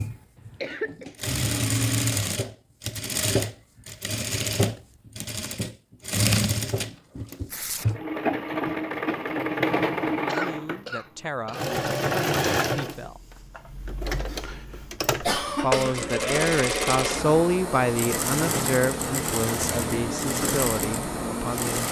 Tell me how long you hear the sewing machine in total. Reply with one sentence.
You can hear the sewing machine for 22 seconds altogether.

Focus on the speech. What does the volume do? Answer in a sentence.
The loudness of the speech goes up, then down.